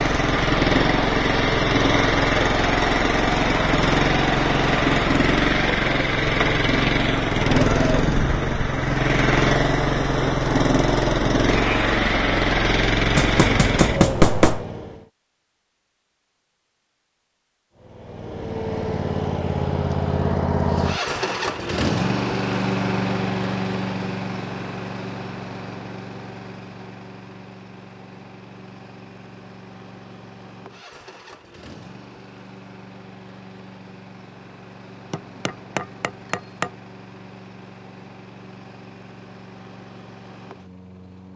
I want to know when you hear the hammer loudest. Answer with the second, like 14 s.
14 s.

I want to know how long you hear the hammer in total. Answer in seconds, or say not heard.
3 s.